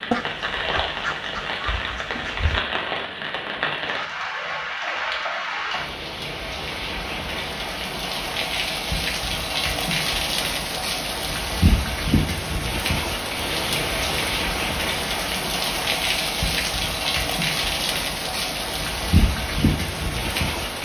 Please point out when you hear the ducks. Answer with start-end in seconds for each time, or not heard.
0.1-2.6.